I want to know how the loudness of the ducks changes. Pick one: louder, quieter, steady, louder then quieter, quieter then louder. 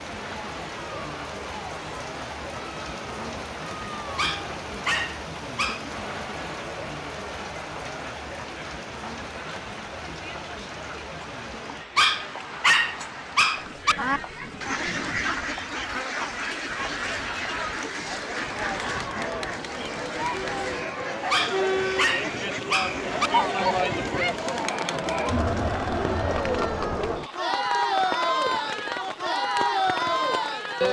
quieter.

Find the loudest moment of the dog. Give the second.
13 s.